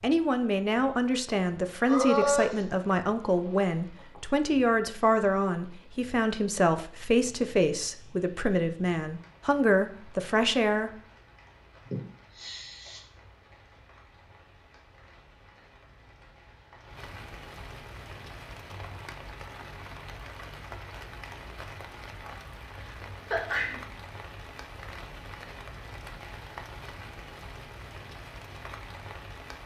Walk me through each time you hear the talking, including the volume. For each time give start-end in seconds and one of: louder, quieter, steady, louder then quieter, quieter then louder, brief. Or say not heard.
0.0-10.9 steady.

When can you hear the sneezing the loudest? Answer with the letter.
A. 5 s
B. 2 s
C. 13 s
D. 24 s
B.